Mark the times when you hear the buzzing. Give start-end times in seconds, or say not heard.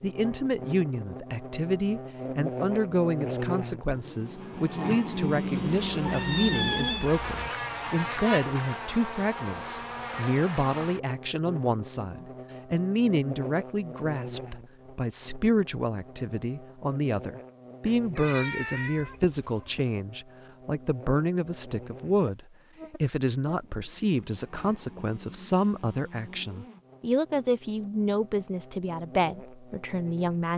0.0-30.5.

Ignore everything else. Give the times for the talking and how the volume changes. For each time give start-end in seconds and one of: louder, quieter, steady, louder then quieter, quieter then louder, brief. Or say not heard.
0.0-30.5 steady.